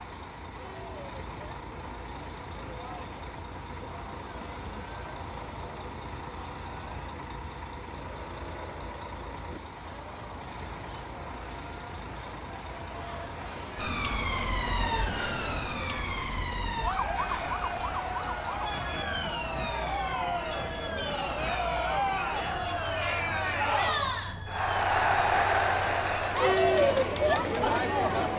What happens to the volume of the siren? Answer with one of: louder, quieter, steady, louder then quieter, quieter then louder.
quieter.